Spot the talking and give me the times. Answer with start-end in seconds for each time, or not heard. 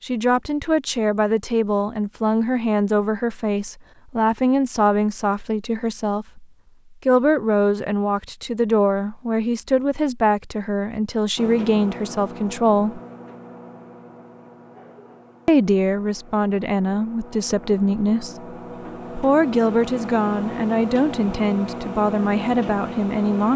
0.0-6.5, 7.0-13.0, 15.4-23.5.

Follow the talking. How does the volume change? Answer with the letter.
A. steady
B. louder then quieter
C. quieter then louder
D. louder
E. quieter
A.